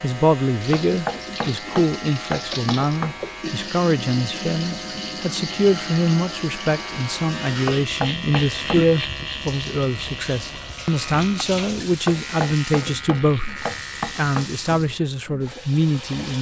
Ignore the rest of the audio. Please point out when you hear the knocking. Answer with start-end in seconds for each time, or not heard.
0.7-3.1, 7.7-8.8, 12.1-14.5.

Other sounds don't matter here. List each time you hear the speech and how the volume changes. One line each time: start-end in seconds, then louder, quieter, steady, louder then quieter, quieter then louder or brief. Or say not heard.
0.0-16.3 steady.